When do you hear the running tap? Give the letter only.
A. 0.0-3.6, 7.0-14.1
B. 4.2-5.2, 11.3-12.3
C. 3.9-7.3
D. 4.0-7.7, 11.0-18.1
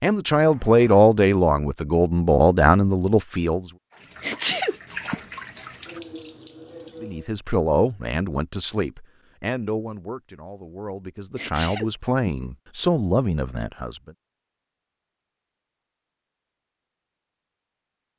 C.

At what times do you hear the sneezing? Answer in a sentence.
The sneezing can be heard from 4.2 to 5.2 s and from 11.3 to 12.3 s.